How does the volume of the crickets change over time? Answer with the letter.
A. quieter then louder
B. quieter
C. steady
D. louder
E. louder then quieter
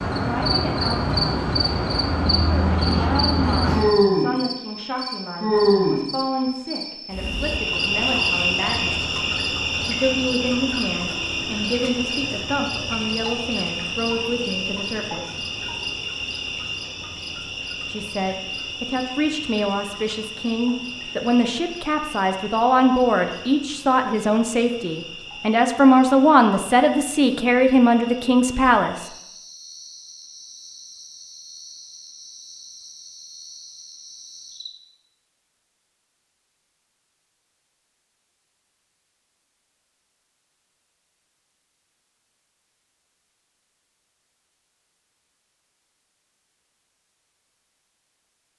B.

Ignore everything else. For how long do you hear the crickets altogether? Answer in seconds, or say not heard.
35 s.